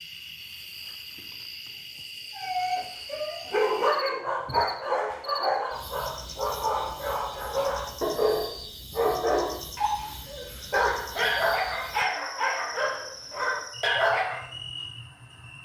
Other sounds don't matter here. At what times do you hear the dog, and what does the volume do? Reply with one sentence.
The dog can be heard from 2.4 to 14.4 s, at a steady volume.